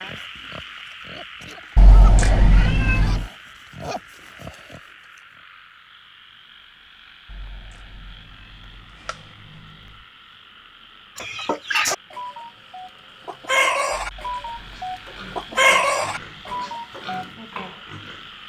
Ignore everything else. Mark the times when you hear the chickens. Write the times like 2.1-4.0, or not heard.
11.2-17.2.